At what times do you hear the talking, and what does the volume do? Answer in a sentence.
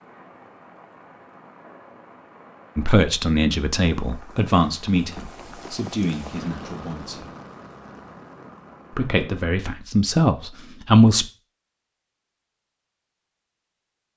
You can hear the talking from 2.8 to 7.3 s, getting quieter; and briefly from 8.9 to 11.2 s.